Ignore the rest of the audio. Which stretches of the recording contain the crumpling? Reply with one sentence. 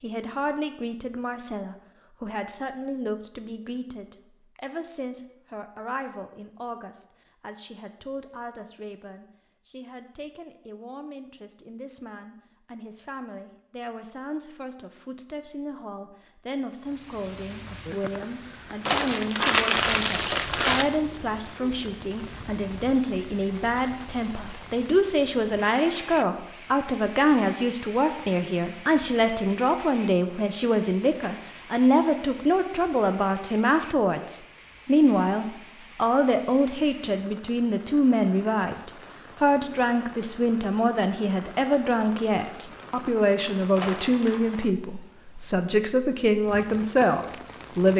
The crumpling can be heard from 18.9 to 20.9 s and from 43.8 to 44.4 s.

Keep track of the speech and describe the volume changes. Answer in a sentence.
The loudness of the speech goes up.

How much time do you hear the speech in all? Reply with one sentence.
You can hear the speech for 48 seconds altogether.